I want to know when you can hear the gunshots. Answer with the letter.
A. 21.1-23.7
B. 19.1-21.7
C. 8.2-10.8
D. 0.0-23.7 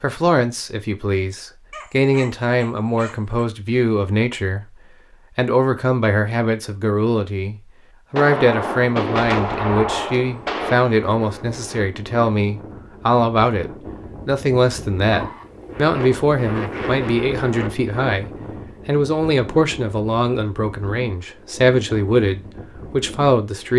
C.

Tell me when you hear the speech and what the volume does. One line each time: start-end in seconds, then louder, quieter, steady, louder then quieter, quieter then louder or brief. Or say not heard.
0.0-23.7 steady.